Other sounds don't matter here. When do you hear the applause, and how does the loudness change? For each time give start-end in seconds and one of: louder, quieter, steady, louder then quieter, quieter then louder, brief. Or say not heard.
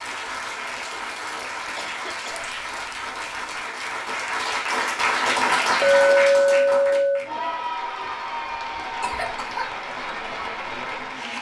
0.0-11.3 louder then quieter.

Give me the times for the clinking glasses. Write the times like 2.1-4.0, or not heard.
2.4-3.0, 5.8-7.2.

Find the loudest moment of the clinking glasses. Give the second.
6 s.